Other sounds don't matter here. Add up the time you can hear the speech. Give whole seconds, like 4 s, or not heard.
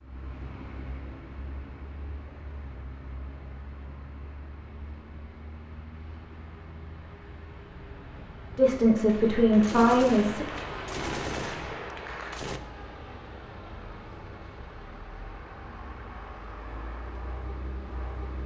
2 s.